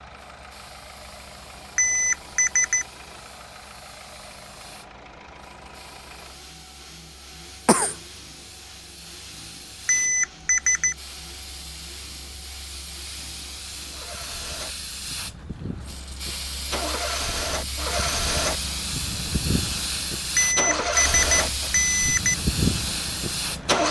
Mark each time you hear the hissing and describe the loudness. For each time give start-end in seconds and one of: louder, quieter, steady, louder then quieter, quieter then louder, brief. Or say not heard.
0.2-23.8 louder.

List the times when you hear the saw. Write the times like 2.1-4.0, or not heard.
not heard.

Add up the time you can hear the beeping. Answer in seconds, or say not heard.
4 s.